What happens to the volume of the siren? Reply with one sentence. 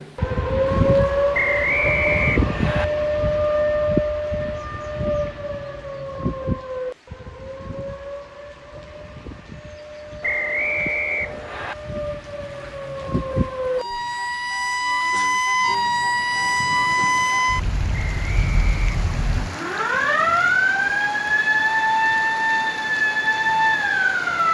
The loudness of the siren goes down, then up.